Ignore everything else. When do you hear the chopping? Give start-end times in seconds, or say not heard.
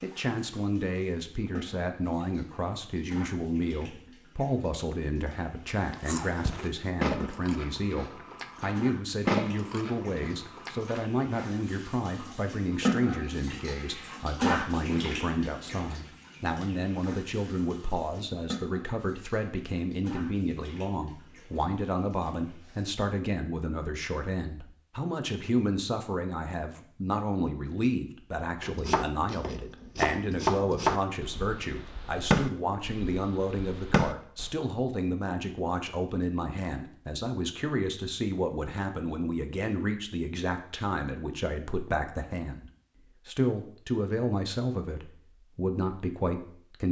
28.6-34.5.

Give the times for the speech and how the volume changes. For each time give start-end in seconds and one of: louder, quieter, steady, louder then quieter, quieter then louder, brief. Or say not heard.
0.0-46.8 steady.